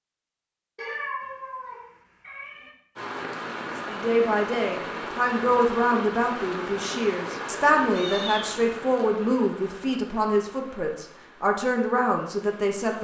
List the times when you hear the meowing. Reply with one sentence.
The meowing can be heard from 0.8 to 2.7 s and from 8.0 to 9.1 s.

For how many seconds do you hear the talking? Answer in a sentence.
The talking can be heard for 9 seconds in total.